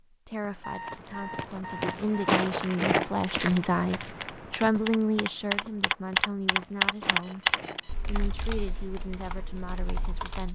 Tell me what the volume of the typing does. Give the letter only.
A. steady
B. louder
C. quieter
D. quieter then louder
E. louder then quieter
E.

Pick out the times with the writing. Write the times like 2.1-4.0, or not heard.
not heard.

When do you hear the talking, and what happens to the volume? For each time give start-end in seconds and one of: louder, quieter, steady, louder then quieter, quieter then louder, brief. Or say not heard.
0.1-7.5 louder then quieter
8.1-10.5 brief.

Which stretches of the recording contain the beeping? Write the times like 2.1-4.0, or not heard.
0.6-2.4, 7.2-8.0.